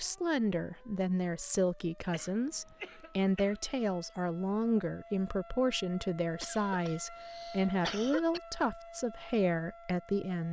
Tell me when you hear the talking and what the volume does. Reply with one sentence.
You can hear the talking from 0.0 to 10.4 s, at a steady volume.